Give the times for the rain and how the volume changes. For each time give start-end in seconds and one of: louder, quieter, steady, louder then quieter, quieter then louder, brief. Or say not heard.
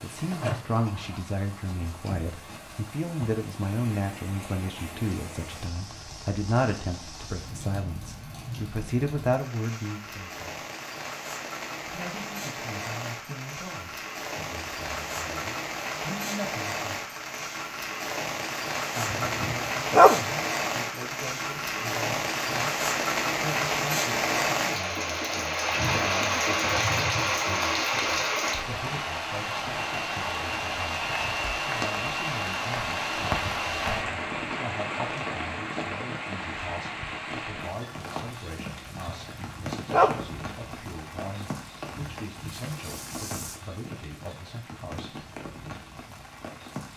0.0-46.9 louder then quieter.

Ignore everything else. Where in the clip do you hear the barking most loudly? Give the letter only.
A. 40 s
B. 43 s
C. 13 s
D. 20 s
D.